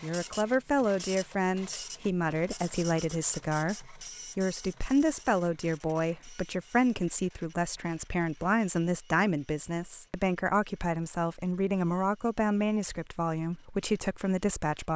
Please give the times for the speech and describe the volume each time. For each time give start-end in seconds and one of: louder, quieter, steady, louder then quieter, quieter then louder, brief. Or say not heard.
0.0-14.9 steady.